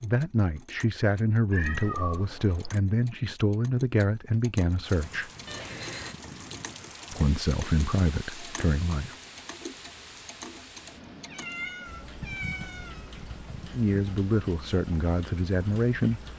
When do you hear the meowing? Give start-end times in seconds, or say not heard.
1.5-2.7, 5.5-6.2, 11.2-13.1.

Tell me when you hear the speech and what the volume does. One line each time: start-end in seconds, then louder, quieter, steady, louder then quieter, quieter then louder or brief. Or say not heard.
0.0-5.3 steady
7.1-9.2 brief
13.7-16.2 brief.